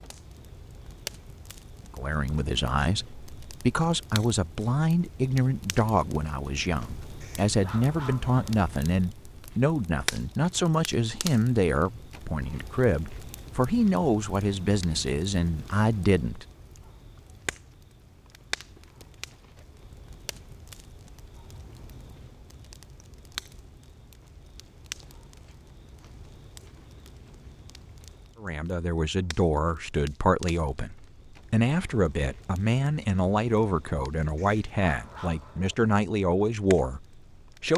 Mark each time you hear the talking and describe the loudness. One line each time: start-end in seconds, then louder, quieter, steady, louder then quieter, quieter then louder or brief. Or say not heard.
1.9-16.4 steady
28.4-37.7 steady.